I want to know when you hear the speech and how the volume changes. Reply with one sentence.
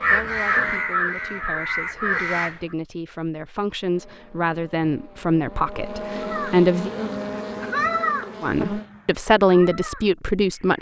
You can hear the speech from 0.0 to 6.9 s, getting louder; and briefly from 8.4 to 10.7 s.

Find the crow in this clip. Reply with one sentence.
You can hear the crow from 0.0 to 2.5 s and from 6.2 to 10.7 s.